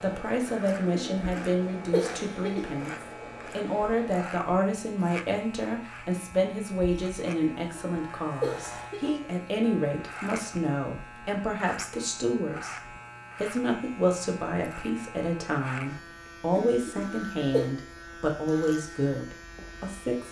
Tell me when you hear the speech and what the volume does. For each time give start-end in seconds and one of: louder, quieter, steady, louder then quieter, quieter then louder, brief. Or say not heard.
0.0-12.8 steady
13.4-20.2 steady.